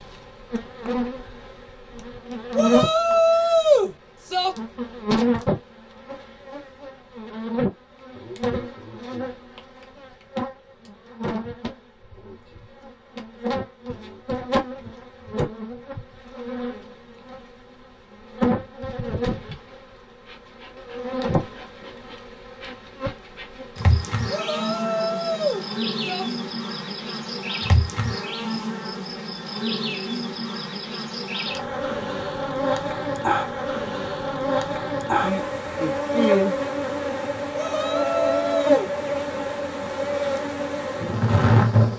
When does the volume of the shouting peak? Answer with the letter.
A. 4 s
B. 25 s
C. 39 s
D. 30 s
A.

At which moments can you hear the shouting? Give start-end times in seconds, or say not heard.
2.5-4.5, 24.3-26.2, 37.5-38.9.